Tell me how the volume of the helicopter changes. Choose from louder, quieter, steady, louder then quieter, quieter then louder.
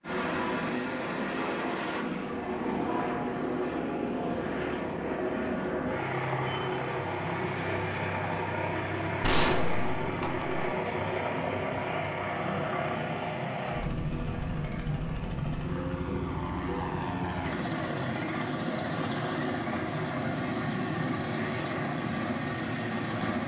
steady.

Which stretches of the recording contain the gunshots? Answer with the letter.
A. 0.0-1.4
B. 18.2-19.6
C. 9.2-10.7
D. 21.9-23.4
C.